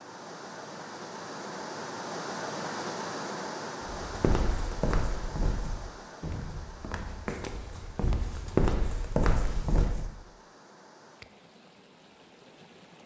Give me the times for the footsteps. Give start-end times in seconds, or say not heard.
4.0-10.1.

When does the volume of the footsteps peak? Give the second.
9 s.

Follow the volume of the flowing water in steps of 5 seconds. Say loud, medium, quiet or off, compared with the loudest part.
loud, medium, quiet.